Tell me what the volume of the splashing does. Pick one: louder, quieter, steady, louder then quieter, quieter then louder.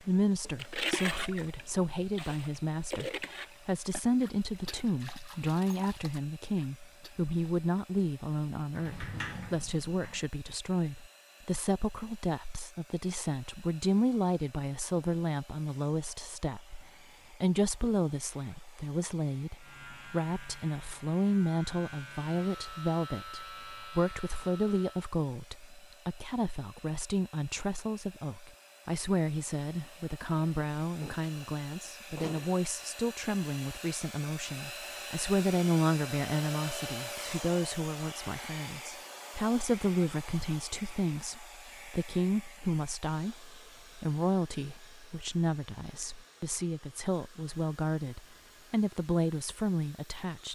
quieter.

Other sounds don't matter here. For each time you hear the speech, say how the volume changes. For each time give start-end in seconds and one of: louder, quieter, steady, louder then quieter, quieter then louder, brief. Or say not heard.
0.1-50.5 steady.